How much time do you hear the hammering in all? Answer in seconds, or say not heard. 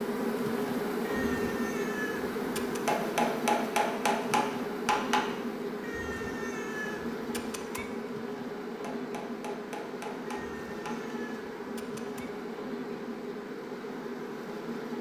5 s.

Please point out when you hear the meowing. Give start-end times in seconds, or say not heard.
1.0-2.8, 5.8-7.8, 10.2-12.3.